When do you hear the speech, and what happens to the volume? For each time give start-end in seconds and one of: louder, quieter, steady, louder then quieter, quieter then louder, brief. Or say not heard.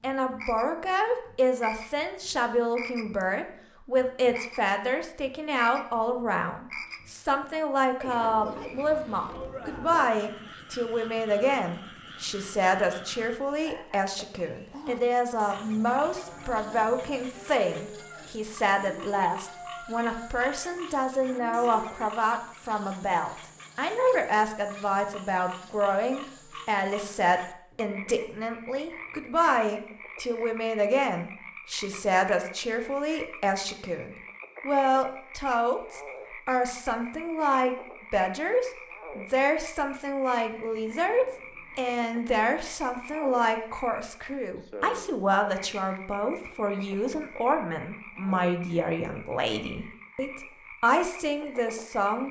0.0-52.2 steady.